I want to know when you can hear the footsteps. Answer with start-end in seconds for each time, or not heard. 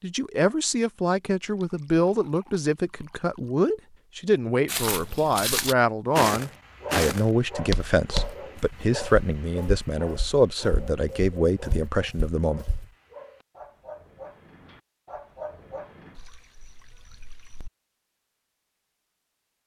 4.7-12.8.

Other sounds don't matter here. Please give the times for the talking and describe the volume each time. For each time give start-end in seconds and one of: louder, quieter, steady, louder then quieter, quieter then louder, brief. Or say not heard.
0.0-12.7 steady.